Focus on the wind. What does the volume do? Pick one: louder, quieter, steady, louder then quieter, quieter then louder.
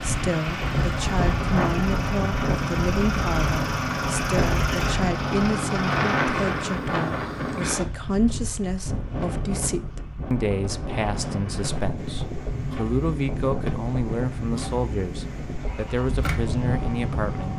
quieter.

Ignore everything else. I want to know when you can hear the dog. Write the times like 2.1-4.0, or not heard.
not heard.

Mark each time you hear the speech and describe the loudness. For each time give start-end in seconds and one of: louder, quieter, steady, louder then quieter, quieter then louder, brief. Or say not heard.
0.0-17.5 steady.